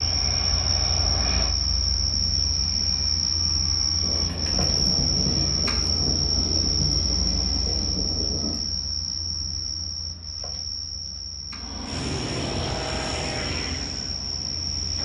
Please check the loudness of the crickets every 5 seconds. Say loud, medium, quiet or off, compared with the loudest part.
loud, loud, medium.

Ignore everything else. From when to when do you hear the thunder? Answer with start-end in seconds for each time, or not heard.
4.0-8.6.